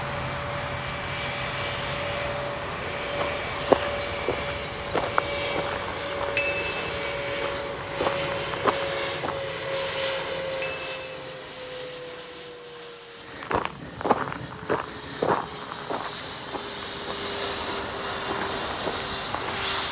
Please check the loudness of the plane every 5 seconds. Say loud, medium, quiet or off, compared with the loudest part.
loud, loud, medium, loud.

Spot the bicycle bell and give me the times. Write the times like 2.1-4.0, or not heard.
6.3-6.9, 10.6-11.1.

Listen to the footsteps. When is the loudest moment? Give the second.
4 s.